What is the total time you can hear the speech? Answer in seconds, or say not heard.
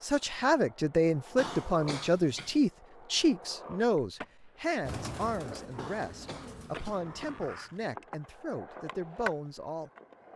10 s.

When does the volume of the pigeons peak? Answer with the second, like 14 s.
5 s.